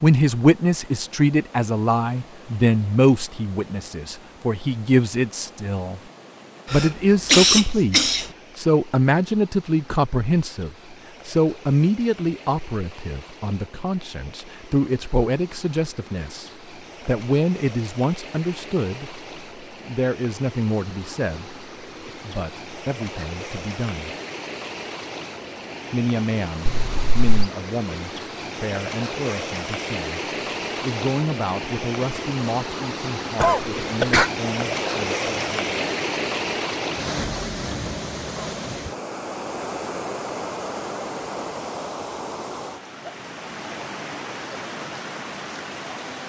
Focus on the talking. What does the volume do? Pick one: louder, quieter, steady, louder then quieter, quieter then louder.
quieter.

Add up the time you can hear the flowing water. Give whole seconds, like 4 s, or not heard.
46 s.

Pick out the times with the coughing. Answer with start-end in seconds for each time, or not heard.
6.7-8.2, 26.6-27.4, 33.4-34.3.